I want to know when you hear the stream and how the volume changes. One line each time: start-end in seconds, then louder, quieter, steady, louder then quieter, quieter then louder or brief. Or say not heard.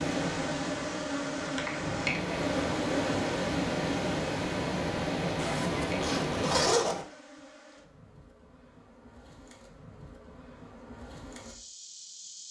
0.0-6.8 louder.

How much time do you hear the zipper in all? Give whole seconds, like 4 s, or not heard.
2 s.